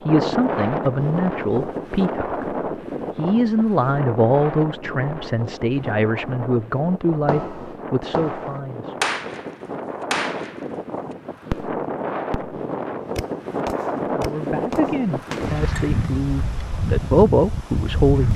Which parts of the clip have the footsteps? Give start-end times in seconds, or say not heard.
not heard.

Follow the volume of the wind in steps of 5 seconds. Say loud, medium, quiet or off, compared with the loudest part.
loud, medium, loud, loud.